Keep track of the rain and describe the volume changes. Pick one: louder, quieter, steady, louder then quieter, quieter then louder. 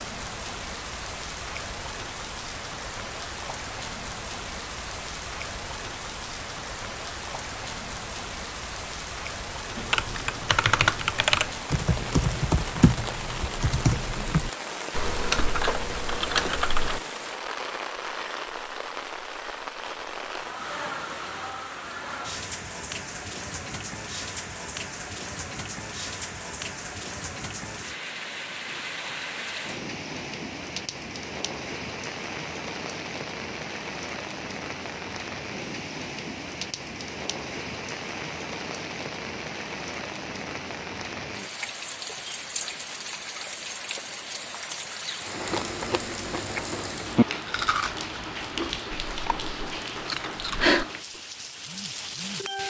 steady.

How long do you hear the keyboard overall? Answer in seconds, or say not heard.
7 s.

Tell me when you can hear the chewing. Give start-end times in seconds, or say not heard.
45.2-50.9.